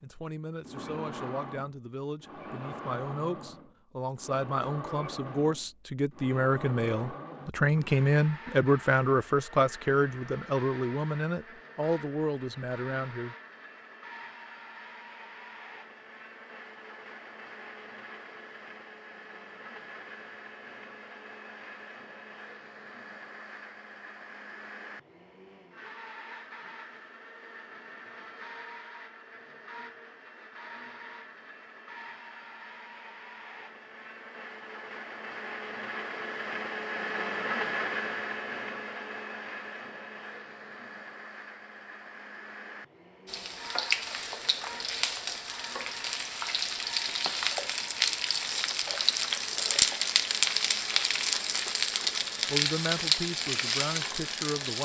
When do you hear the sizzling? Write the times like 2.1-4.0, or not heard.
43.2-54.7.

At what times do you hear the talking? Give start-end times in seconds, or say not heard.
0.0-13.3, 52.5-54.7.